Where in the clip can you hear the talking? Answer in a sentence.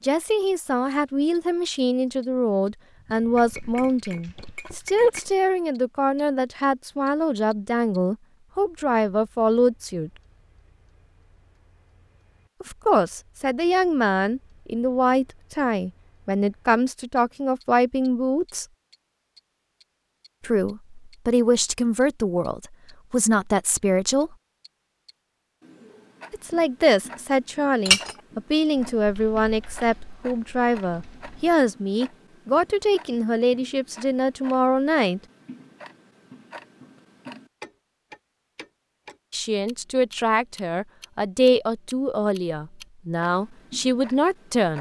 You can hear the talking from 0.0 to 10.1 s, from 12.6 to 18.6 s, from 20.4 to 24.4 s, from 26.3 to 35.2 s and from 39.3 to 44.7 s.